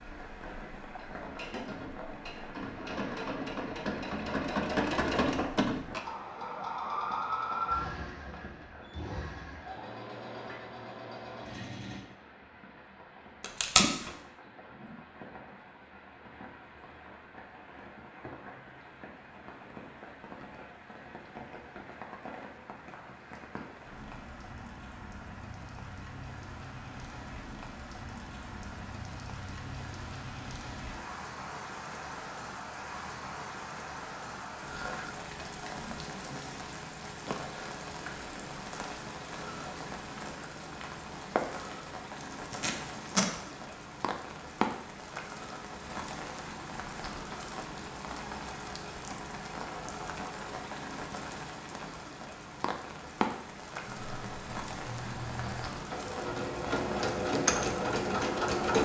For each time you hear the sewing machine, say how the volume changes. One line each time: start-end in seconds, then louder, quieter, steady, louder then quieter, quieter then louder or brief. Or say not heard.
0.0-12.0 louder then quieter
53.9-58.8 louder.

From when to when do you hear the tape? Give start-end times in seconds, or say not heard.
13.4-14.1, 42.2-43.3.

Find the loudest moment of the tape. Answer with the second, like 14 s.
14 s.